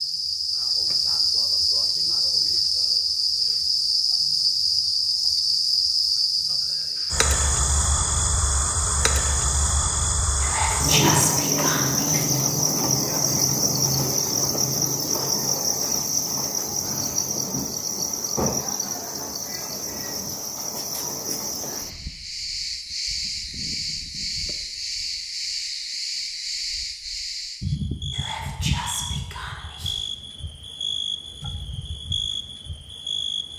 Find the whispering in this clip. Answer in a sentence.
The whispering can be heard from 10.4 to 12.2 s and from 28.1 to 30.1 s.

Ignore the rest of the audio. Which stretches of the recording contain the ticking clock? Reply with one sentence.
You can't hear the ticking clock here.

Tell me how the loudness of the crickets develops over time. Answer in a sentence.
The loudness of the crickets goes down.